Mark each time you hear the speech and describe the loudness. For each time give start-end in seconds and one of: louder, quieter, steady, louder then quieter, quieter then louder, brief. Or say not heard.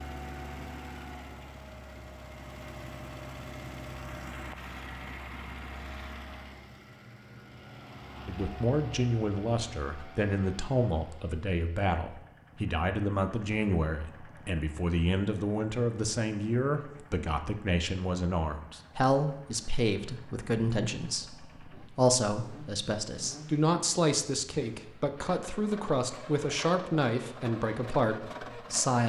8.2-29.0 steady.